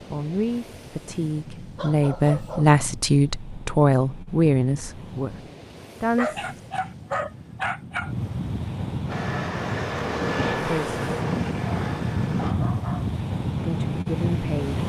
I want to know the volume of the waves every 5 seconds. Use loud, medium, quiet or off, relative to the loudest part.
quiet, medium, loud.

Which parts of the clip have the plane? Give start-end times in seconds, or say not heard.
9.1-12.6.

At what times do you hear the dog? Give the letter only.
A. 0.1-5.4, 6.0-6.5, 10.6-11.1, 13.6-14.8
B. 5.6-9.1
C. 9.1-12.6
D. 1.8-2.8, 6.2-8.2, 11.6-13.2
D.